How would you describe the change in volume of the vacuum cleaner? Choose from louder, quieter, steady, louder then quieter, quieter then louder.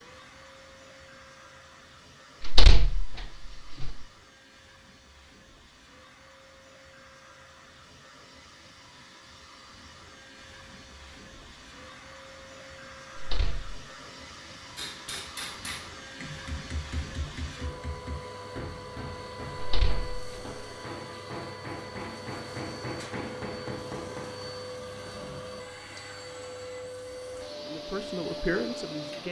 louder.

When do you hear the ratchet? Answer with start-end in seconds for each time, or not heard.
not heard.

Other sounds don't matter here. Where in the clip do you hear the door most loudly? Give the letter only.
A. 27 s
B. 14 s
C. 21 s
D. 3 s
D.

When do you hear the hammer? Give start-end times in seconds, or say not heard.
14.8-24.4.